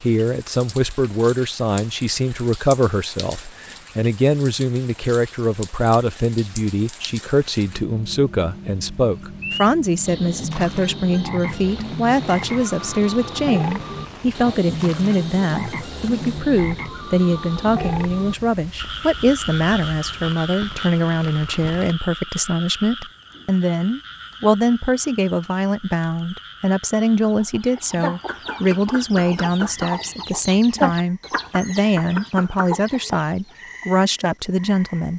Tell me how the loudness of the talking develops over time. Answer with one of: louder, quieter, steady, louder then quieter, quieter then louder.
steady.